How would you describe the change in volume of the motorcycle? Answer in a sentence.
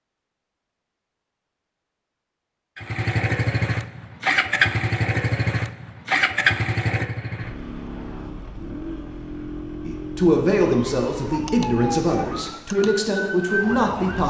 The volume of the motorcycle goes down.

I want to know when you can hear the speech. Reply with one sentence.
You can hear the speech from 9.8 to 14.2 s.